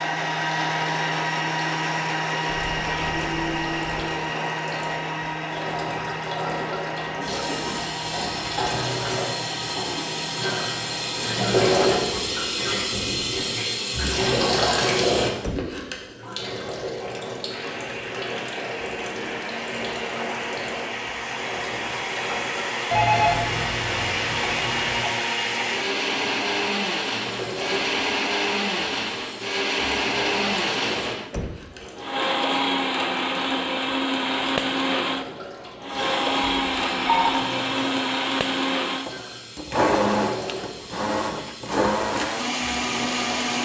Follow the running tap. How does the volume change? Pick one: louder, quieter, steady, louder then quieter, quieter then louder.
louder then quieter.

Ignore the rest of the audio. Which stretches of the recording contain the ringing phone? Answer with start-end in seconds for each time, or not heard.
2.5-4.1, 22.9-25.1, 36.5-37.4.